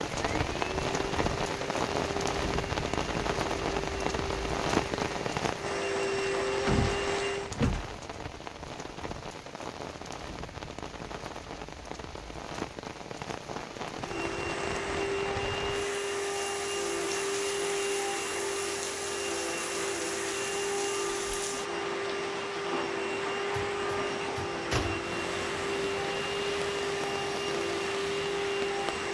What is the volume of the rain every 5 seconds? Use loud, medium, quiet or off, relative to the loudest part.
loud, medium, medium, medium, medium, medium.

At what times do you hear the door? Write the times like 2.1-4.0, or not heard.
6.7-8.0, 23.5-25.1.